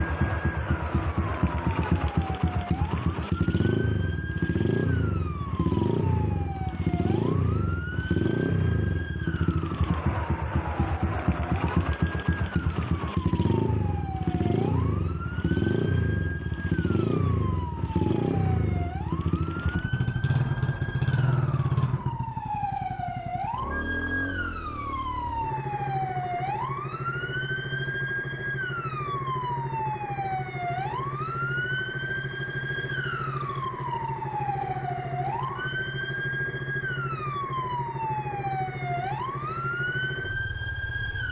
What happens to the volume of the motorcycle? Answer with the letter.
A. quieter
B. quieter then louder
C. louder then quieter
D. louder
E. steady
A.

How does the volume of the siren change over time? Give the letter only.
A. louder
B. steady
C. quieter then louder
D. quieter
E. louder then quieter
A.